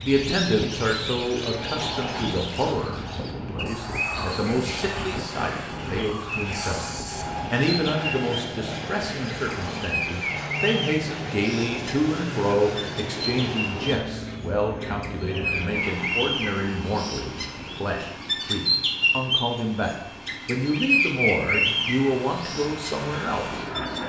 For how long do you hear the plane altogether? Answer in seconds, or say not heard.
24 s.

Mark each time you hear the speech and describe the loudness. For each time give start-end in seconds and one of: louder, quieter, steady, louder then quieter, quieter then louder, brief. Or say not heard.
0.0-24.0 steady.